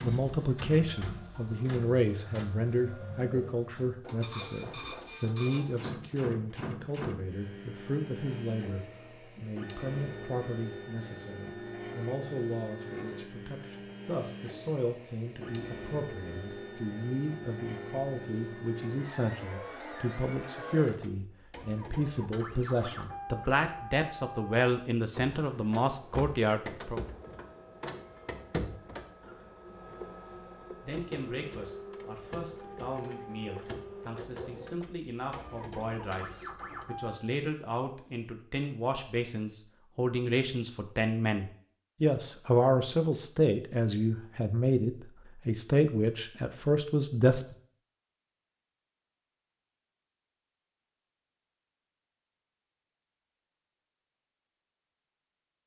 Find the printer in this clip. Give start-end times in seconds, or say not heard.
0.0-37.2.